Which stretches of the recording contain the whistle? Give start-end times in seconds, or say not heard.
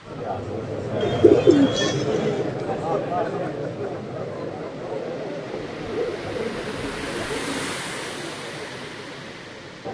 not heard.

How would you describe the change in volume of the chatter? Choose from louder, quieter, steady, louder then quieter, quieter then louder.
quieter.